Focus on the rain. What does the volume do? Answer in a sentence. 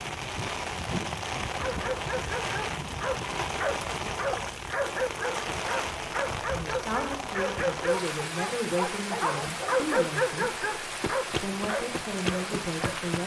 The volume of the rain stays about the same.